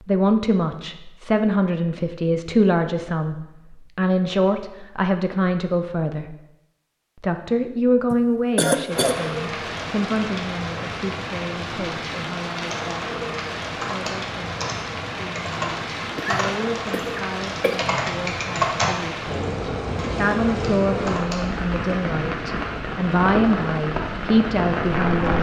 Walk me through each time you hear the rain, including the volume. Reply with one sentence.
The rain can be heard from 8.9 to 25.3 s, at a steady volume.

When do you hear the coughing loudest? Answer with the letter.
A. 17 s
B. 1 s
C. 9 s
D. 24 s
C.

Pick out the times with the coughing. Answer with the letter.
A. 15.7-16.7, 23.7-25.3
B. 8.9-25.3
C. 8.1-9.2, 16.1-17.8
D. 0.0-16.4
C.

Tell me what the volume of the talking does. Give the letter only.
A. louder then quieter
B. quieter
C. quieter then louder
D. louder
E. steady
C.